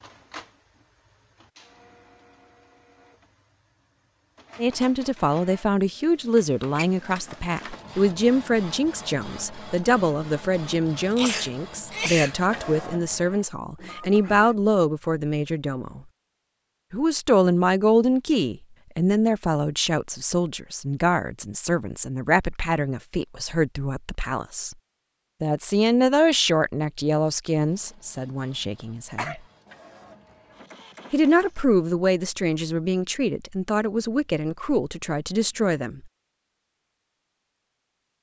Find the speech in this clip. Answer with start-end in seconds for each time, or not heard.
4.5-16.0, 16.9-24.8, 25.4-29.4, 31.1-36.0.